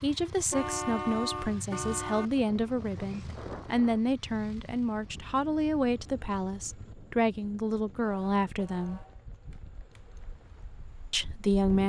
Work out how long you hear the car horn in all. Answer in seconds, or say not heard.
4 s.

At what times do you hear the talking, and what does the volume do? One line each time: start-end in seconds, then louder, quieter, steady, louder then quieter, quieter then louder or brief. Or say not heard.
0.0-9.0 steady
11.1-11.8 brief.